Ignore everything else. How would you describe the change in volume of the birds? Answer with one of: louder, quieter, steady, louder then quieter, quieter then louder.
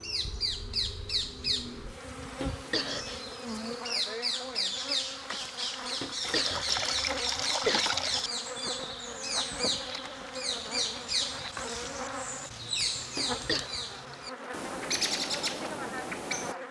steady.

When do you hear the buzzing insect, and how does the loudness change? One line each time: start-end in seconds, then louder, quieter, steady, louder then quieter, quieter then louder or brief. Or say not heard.
0.0-16.6 steady.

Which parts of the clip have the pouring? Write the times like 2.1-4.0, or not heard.
6.2-8.2.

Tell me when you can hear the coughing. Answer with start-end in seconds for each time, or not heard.
2.2-3.2, 5.8-7.8, 13.2-13.7.